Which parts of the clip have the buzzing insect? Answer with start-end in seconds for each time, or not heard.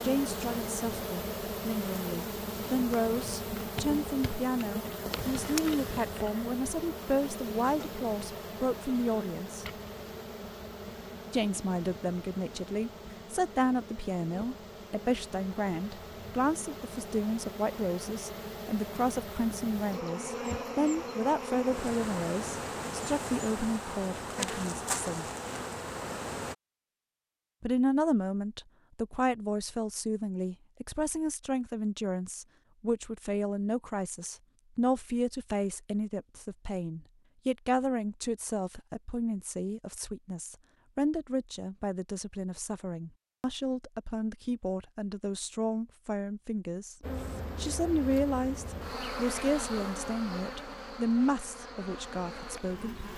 0.0-26.6, 47.0-53.1.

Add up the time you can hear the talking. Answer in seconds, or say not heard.
49 s.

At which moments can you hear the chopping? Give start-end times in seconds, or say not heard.
not heard.